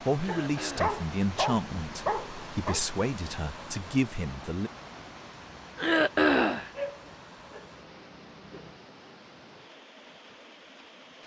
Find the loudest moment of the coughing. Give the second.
6 s.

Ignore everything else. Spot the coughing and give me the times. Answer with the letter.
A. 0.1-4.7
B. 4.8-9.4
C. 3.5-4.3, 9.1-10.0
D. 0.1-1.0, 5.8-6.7
D.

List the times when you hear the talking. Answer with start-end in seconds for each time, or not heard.
0.1-4.7.